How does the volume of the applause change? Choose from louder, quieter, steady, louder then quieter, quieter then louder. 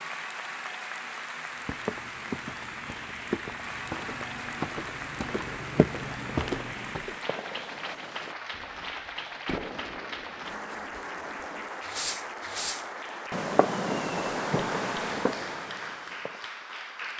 steady.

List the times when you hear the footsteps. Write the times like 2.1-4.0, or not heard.
1.6-7.2.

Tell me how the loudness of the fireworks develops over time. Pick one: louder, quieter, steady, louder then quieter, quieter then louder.
louder.